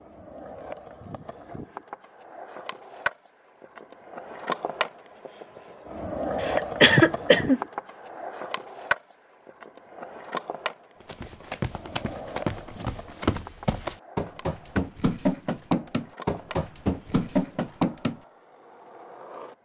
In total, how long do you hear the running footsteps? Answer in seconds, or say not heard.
7 s.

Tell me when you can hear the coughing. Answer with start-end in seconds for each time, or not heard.
6.4-7.6.